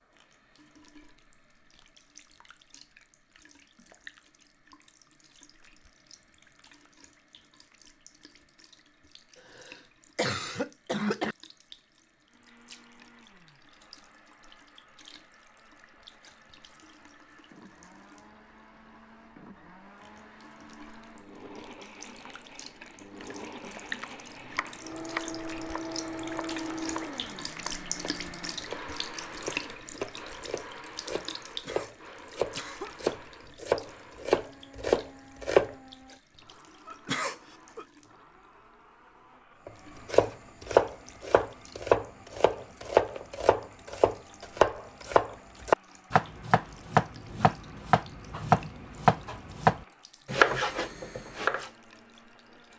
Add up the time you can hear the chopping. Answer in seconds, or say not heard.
24 s.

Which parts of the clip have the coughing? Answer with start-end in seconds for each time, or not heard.
9.3-11.3, 31.4-33.0, 36.9-37.9.